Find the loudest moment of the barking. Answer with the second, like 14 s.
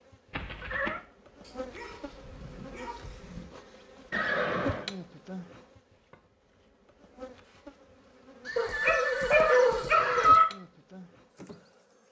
10 s.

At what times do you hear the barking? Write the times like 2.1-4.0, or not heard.
1.4-3.5, 8.6-10.4.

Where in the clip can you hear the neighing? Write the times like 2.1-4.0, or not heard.
0.3-1.1, 4.1-4.9, 8.4-10.4.